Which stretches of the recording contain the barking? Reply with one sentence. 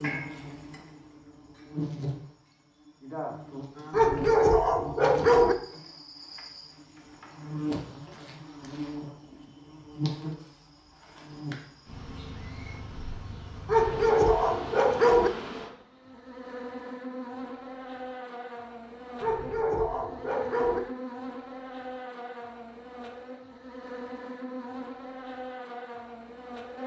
You can hear the barking from 3.9 to 5.5 s, from 13.7 to 15.3 s and from 19.2 to 20.8 s.